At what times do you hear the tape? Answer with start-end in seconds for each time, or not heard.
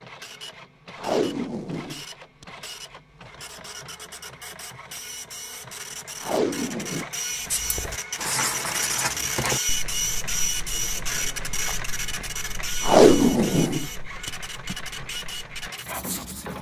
0.9-2.5, 6.2-7.0, 12.8-14.8.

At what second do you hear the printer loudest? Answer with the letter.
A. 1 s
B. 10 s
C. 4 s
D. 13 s
B.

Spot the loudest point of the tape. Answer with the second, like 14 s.
13 s.